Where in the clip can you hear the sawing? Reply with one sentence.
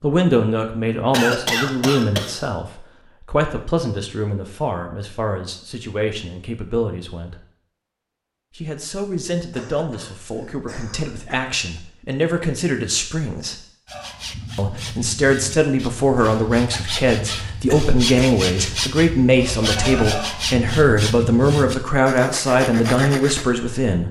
The sawing can be heard from 13.8 to 23.4 s.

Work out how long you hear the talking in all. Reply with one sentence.
You can hear the talking for 22 seconds altogether.